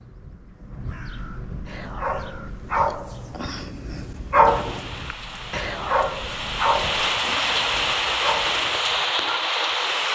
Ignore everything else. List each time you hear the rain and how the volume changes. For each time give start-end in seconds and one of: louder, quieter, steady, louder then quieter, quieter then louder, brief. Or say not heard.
4.5-10.1 louder.